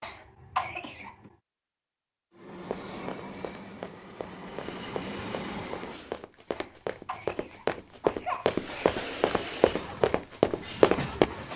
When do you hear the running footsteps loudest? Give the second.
11 s.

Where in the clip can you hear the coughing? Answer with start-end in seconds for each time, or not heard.
0.0-1.3, 6.5-8.9.